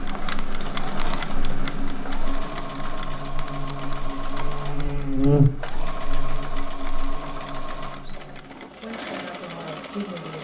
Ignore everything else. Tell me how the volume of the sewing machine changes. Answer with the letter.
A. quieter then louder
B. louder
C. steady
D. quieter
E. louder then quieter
C.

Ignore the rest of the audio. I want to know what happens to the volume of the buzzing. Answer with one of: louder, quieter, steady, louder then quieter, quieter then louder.
louder then quieter.